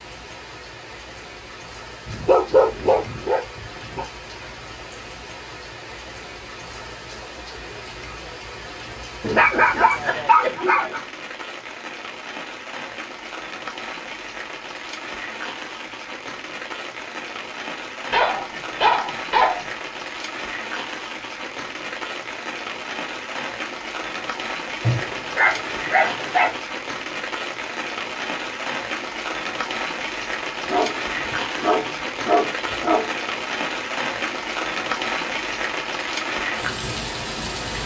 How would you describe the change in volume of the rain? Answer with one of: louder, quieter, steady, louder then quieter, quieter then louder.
louder.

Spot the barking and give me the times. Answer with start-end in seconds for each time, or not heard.
2.0-4.0, 9.2-11.0, 18.1-19.6, 24.8-26.6, 30.6-33.1.